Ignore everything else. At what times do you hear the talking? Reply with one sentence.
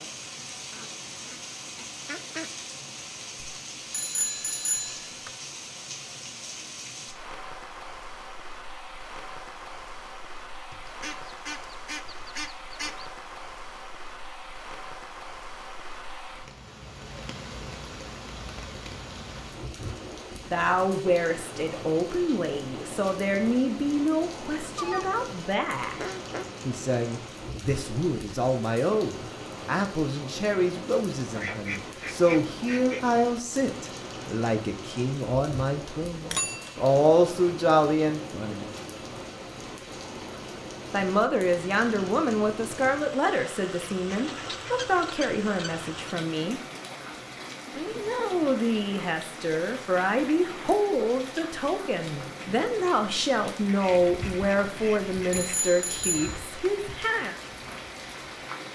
The talking can be heard from 20.5 to 26.0 s, from 26.6 to 38.7 s, from 40.9 to 46.6 s and from 47.8 to 57.4 s.